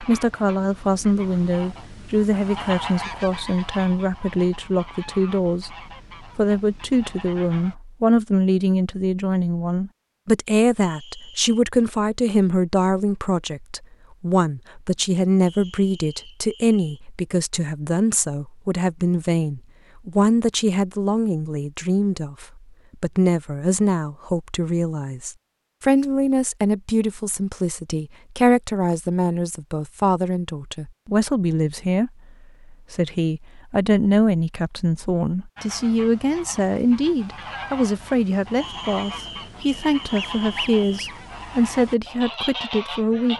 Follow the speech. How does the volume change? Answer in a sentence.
The volume of the speech stays about the same.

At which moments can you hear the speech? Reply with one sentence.
You can hear the speech from 0.0 to 5.8 s, from 6.3 to 32.1 s and from 32.7 to 43.3 s.